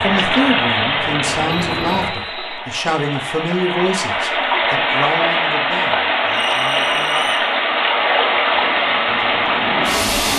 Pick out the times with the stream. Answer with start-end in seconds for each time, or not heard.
0.0-10.3.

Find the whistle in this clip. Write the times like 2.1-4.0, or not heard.
1.7-2.6, 6.3-7.5.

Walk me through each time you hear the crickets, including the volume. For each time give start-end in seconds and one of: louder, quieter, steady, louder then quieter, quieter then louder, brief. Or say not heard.
not heard.